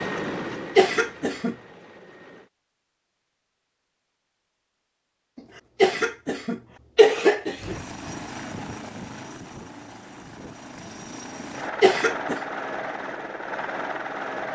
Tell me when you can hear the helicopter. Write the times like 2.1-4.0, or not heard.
0.0-2.5, 7.5-14.4.